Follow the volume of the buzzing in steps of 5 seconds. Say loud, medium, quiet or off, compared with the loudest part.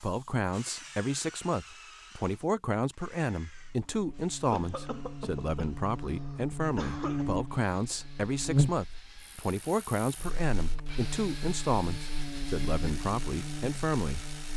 quiet, loud, medium.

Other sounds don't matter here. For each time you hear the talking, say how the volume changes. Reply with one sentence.
The talking can be heard from 0.0 to 14.2 s, at a steady volume.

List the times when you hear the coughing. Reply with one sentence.
You can hear the coughing from 4.5 to 7.2 s.